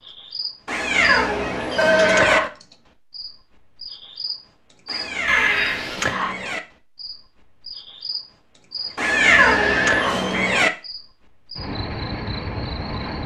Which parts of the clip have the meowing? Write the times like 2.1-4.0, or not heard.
0.7-2.4, 4.8-6.6, 8.9-10.7.